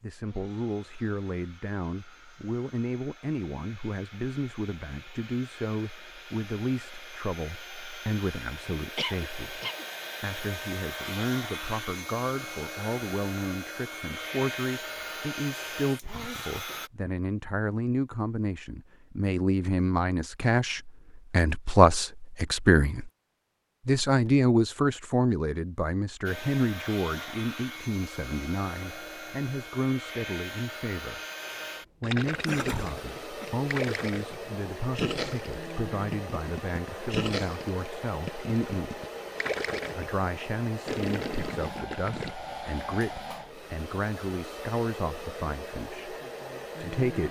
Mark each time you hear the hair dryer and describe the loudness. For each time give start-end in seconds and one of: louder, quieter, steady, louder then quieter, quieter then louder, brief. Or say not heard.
0.1-16.9 louder
26.2-47.2 steady.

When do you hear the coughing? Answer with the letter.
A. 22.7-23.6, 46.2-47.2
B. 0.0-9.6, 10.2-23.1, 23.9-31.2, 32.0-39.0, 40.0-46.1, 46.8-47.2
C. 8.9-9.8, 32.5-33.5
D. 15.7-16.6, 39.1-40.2
C.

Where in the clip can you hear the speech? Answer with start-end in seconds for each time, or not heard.
0.0-9.6, 10.2-23.1, 23.9-31.2, 32.0-39.0, 40.0-46.1, 46.8-47.2.